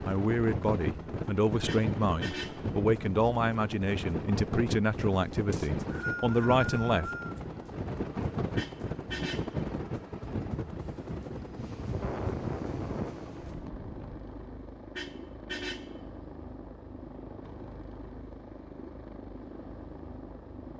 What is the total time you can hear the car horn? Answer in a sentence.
You can hear the car horn for 3 seconds altogether.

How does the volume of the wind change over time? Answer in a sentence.
The volume of the wind stays about the same.